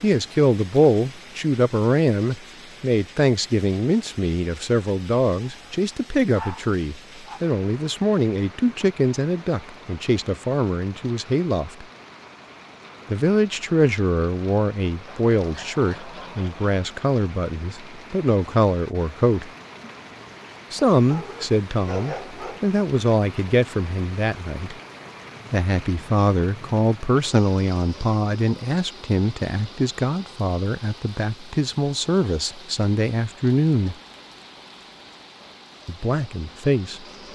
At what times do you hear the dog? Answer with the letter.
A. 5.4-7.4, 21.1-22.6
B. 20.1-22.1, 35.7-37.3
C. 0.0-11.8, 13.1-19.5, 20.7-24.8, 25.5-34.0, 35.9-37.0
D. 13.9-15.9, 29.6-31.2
A.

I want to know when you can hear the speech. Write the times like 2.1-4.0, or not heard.
0.0-11.8, 13.1-19.5, 20.7-24.8, 25.5-34.0, 35.9-37.0.